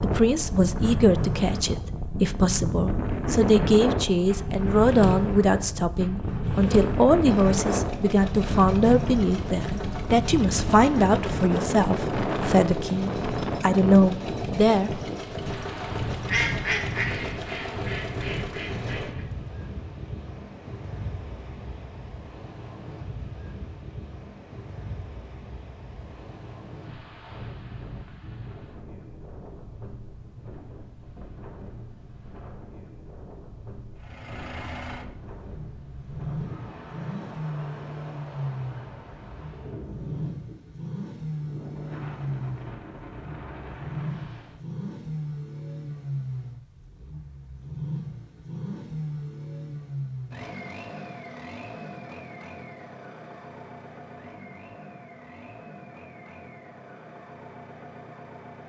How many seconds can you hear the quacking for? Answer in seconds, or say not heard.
3 s.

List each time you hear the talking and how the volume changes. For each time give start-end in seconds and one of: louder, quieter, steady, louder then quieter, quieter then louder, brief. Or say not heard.
0.0-14.9 steady.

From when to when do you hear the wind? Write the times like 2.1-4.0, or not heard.
0.0-44.6.